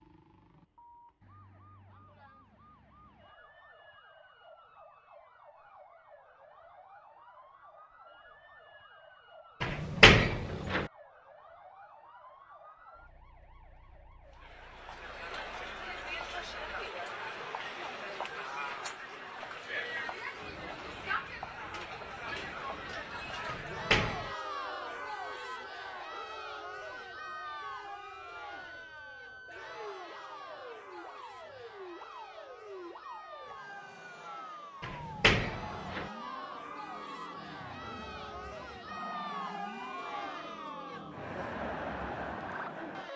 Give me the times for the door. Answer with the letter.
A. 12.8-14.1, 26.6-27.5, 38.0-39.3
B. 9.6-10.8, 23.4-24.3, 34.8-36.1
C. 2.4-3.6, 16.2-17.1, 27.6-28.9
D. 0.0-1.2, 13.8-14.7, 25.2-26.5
B.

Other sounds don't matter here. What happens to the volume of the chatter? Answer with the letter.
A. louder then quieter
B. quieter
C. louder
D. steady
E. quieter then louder
E.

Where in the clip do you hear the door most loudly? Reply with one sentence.
The loudest moment of the door is at 10 seconds.